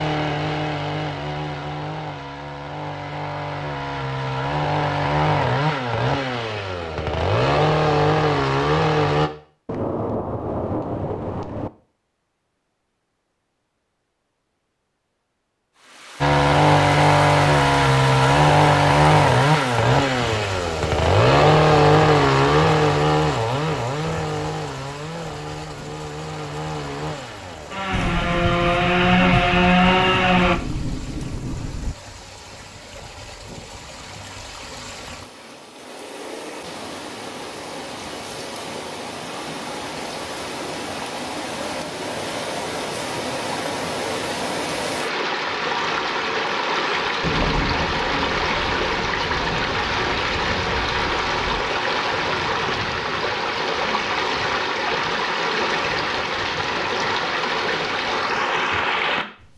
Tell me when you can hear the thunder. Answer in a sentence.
You can hear the thunder from 9.7 to 11.7 s, from 27.9 to 31.9 s and from 47.2 to 51.7 s.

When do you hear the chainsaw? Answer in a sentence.
The chainsaw can be heard from 0.0 to 9.3 s and from 16.2 to 30.6 s.